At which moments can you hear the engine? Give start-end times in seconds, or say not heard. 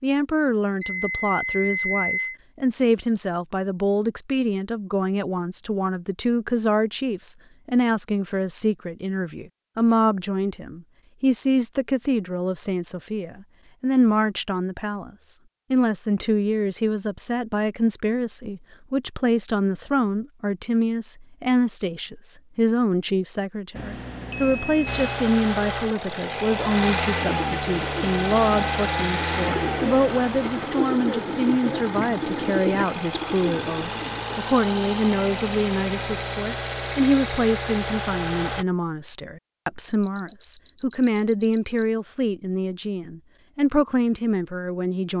24.9-38.6.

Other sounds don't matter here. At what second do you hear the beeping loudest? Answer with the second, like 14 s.
2 s.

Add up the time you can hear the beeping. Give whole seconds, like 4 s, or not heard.
5 s.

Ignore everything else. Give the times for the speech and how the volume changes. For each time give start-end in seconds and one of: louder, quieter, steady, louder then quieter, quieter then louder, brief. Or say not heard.
0.0-45.1 steady.